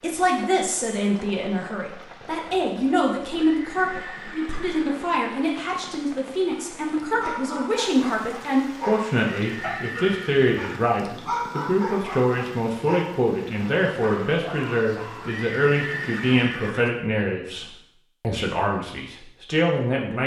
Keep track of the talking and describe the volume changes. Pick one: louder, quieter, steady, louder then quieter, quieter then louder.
steady.